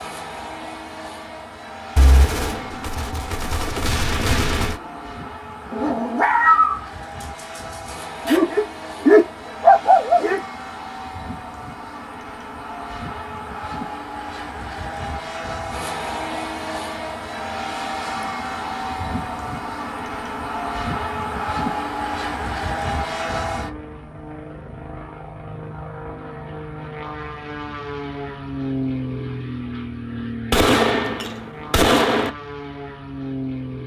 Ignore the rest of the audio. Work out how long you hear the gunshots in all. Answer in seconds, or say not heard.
5 s.